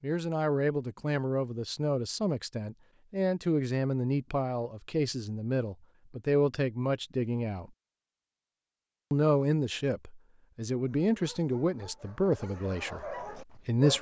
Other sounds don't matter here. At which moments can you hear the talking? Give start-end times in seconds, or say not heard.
0.0-7.7, 9.1-13.9.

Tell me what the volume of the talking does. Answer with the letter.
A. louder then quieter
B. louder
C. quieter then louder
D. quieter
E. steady
E.